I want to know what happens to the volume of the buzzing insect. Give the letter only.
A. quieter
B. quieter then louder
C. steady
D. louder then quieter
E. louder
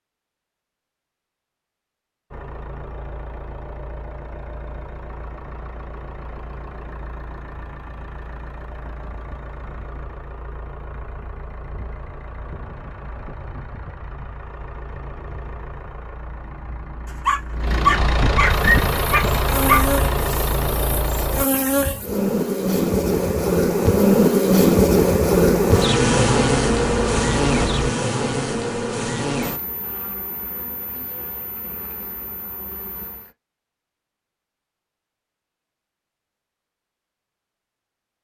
D.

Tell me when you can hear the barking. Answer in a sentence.
You can hear the barking from 17.2 to 19.8 s.